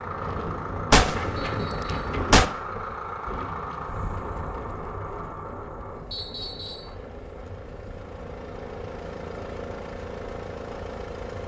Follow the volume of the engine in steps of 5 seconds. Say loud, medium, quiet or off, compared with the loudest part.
loud, medium, loud.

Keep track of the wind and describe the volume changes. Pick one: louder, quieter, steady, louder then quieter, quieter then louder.
quieter.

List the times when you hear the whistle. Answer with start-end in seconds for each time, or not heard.
1.4-2.2, 6.1-7.0.